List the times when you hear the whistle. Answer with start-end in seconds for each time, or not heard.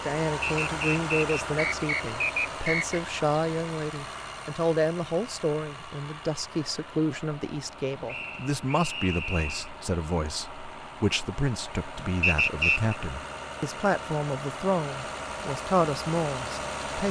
0.5-3.0, 8.1-9.7, 12.2-12.9.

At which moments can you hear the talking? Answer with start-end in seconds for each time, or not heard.
0.0-17.0.